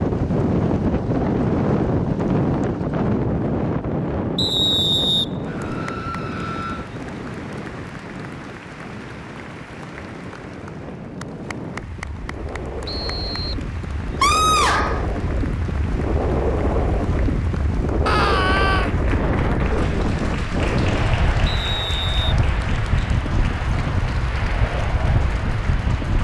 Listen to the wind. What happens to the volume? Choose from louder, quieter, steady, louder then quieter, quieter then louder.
quieter then louder.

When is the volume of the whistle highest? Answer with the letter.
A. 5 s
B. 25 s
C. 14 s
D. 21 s
A.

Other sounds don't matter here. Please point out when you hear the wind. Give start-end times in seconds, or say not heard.
0.0-26.1.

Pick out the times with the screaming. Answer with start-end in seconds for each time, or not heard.
5.5-6.9, 14.2-15.1, 18.1-18.9.